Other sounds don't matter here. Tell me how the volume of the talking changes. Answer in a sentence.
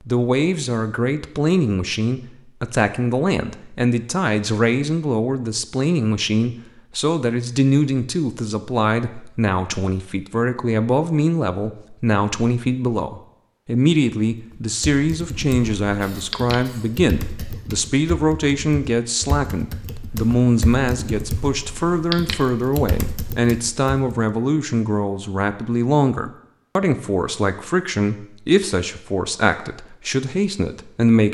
The loudness of the talking stays about the same.